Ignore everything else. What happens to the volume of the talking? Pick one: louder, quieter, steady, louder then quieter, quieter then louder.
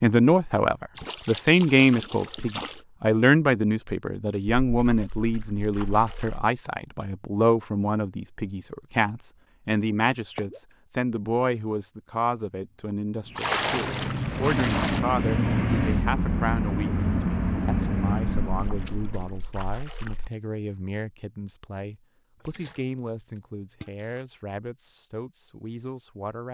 quieter.